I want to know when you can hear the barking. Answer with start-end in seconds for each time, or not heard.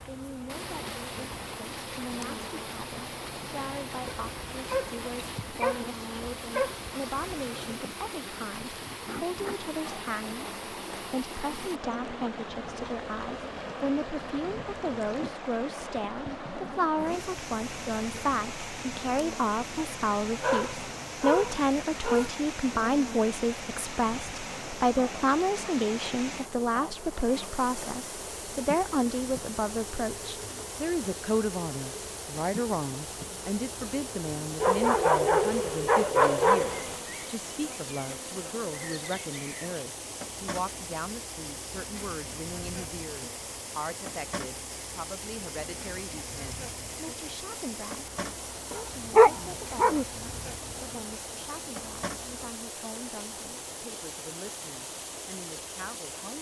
4.0-6.8, 20.4-22.3, 34.6-37.0, 48.7-50.0.